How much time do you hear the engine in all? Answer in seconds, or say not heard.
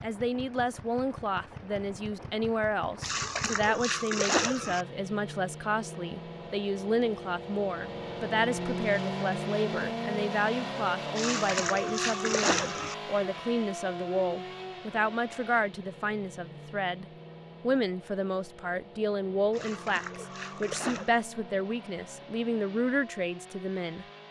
24 s.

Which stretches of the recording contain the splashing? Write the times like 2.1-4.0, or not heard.
3.0-4.8, 11.2-12.9, 19.5-21.2.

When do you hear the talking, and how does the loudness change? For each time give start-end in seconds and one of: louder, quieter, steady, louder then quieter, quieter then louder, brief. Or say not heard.
0.0-24.1 steady.